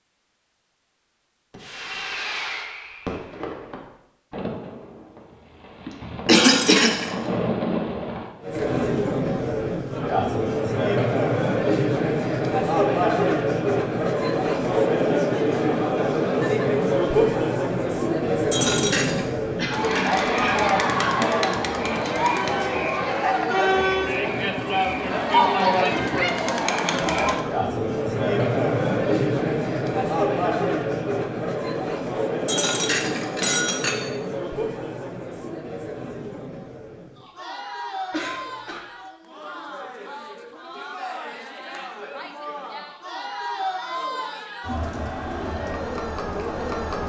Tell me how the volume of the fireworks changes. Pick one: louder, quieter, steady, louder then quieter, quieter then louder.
quieter then louder.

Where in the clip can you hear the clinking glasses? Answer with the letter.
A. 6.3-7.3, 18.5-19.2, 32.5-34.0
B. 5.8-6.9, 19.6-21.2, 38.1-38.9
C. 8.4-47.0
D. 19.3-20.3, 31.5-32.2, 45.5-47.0
A.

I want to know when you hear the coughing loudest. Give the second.
6 s.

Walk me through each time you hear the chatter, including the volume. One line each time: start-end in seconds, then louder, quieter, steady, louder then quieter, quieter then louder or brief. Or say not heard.
8.4-47.0 quieter.